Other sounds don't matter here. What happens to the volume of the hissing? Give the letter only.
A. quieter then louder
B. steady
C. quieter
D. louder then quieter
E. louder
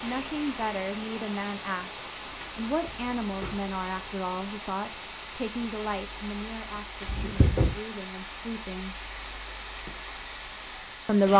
B.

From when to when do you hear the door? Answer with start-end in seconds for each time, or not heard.
2.9-3.6, 7.0-7.8.